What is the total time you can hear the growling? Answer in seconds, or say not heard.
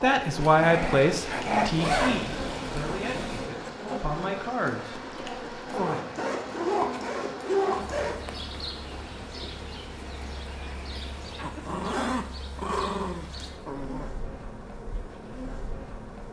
4 s.